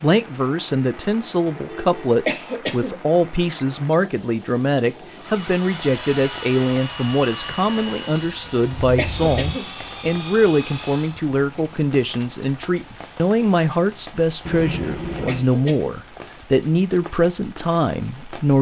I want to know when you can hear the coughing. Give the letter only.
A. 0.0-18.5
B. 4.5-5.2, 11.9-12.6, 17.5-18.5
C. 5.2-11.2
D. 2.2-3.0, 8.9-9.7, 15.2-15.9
D.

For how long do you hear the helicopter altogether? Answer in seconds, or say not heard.
6 s.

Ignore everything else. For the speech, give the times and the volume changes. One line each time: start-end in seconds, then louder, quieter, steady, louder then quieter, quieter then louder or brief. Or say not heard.
0.0-18.5 steady.